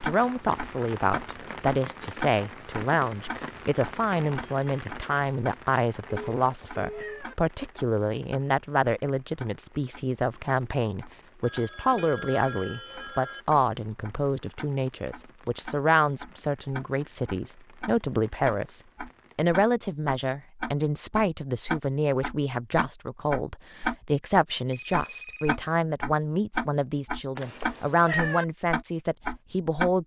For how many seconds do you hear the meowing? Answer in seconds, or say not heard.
2 s.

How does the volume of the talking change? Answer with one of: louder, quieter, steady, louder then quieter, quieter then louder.
steady.